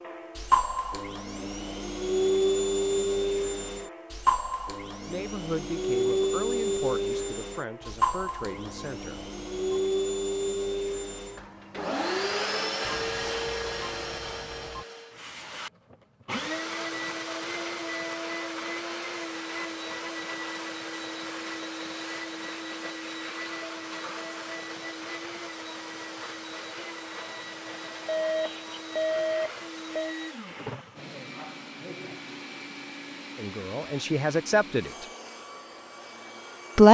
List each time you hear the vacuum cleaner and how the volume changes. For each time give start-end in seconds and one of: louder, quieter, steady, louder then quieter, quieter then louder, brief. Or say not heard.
0.0-36.8 quieter.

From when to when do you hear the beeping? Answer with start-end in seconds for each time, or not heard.
7.8-9.8, 12.8-14.8, 28.1-30.1.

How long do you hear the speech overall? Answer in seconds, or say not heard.
6 s.